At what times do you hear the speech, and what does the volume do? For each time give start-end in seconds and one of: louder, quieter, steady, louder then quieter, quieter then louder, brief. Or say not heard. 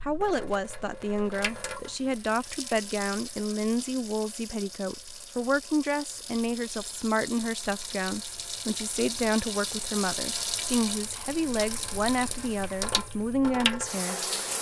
0.0-14.2 steady.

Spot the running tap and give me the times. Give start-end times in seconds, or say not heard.
0.0-14.5.